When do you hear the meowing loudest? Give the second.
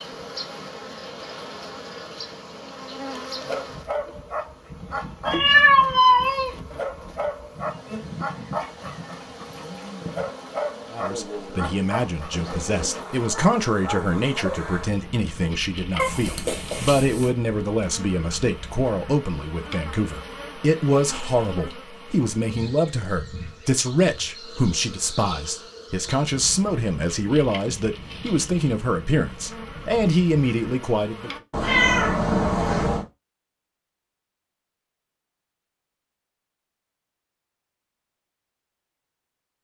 6 s.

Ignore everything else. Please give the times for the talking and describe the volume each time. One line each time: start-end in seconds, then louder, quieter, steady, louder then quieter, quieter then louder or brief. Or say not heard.
10.9-31.3 steady.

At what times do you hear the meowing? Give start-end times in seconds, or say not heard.
5.2-6.5, 15.9-17.4, 31.5-33.0.